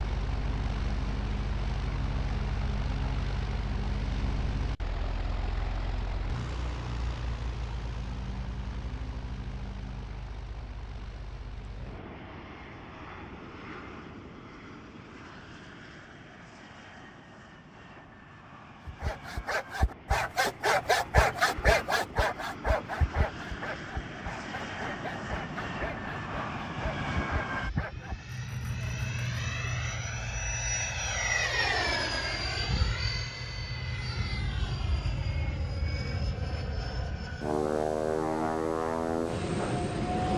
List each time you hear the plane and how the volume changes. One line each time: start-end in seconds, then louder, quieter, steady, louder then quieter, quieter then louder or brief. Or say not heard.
0.0-40.3 quieter then louder.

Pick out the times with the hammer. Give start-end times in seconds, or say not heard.
not heard.